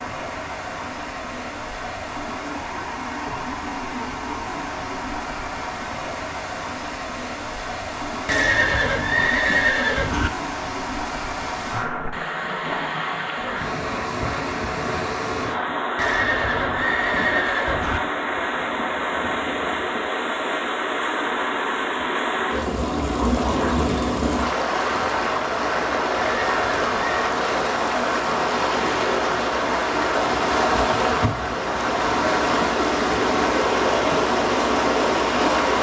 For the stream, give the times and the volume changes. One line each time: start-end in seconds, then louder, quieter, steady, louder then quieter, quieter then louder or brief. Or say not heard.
0.0-35.7 louder.